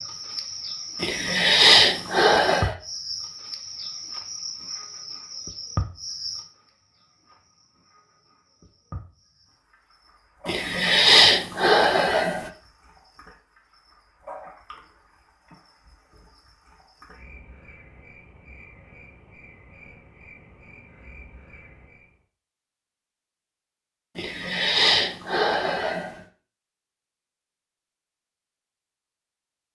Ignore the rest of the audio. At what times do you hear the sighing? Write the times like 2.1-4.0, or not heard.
1.0-2.8, 10.4-12.5, 24.1-26.2.